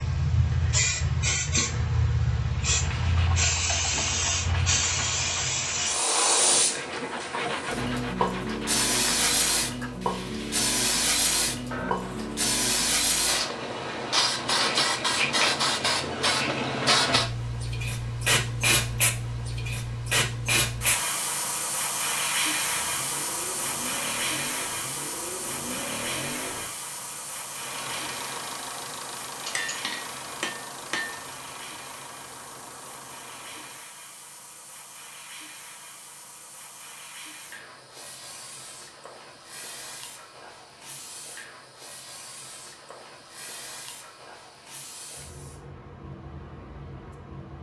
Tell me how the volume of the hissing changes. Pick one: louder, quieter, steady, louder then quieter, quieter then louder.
quieter.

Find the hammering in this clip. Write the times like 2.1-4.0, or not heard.
29.4-31.3.